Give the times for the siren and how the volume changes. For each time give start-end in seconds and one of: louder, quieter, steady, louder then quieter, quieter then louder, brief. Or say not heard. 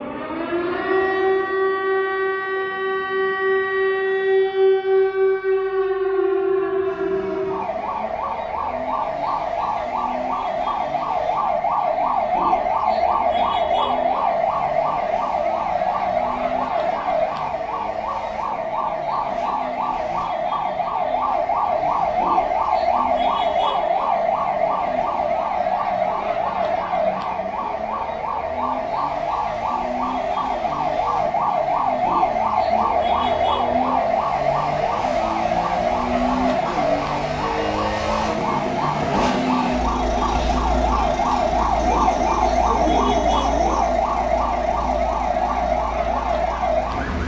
0.0-47.2 steady.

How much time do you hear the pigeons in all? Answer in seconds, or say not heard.
2 s.